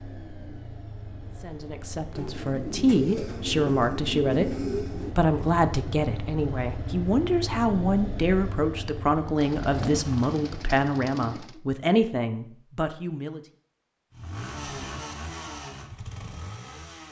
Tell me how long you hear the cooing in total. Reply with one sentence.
You can hear the cooing for 5 seconds altogether.